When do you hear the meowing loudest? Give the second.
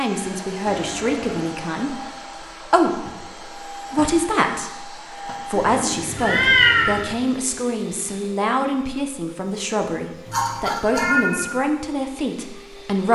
7 s.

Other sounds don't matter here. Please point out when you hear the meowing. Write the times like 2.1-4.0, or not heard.
0.7-1.6, 5.5-7.2, 10.2-11.6.